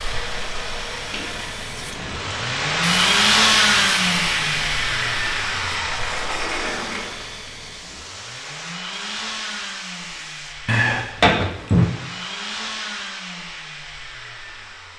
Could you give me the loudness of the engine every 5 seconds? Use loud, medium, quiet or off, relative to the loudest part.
loud, medium, quiet.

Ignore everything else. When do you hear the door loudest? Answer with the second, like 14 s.
11 s.